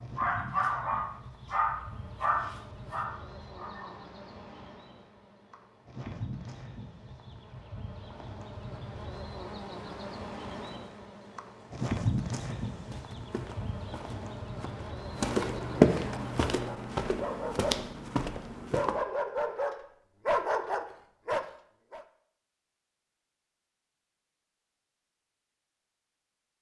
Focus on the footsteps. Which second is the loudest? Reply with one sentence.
The volume of the footsteps peaks at 16 seconds.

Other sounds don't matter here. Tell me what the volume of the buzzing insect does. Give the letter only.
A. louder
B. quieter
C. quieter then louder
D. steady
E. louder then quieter
E.